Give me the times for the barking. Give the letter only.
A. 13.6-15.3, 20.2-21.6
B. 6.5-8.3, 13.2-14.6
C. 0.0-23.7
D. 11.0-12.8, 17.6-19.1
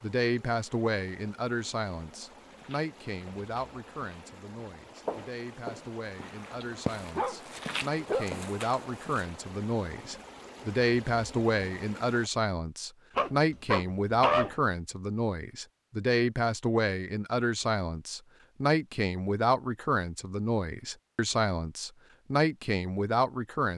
B.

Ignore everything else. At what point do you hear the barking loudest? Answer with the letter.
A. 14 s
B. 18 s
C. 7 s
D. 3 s
A.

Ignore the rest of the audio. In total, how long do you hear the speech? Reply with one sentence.
You can hear the speech for 24 seconds altogether.